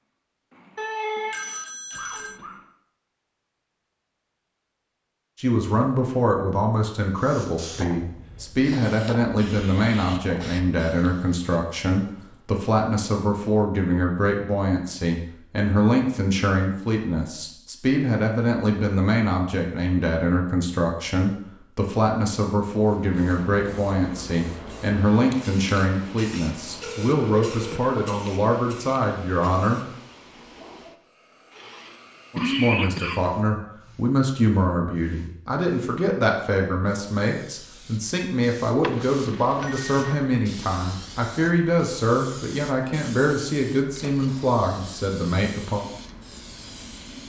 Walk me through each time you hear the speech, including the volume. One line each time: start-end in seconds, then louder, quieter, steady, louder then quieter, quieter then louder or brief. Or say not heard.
5.3-29.8 steady
32.3-45.9 steady.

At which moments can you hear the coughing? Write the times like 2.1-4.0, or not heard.
1.9-2.5, 31.6-33.4.